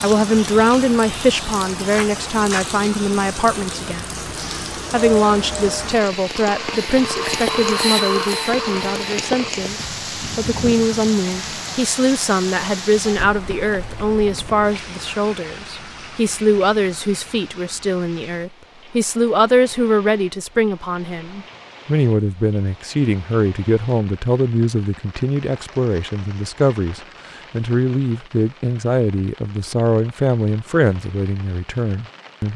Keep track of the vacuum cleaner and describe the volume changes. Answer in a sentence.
The volume of the vacuum cleaner goes up, then down.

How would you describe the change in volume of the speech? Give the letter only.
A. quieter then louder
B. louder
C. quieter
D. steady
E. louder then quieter
D.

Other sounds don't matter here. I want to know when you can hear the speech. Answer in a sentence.
The speech can be heard from 0.0 to 4.2 s and from 4.9 to 32.5 s.